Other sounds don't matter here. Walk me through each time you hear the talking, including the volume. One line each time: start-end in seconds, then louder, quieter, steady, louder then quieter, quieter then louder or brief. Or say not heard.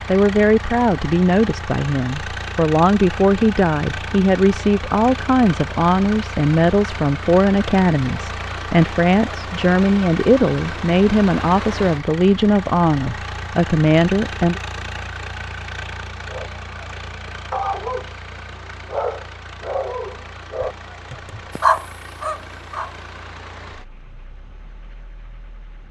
0.1-14.6 steady.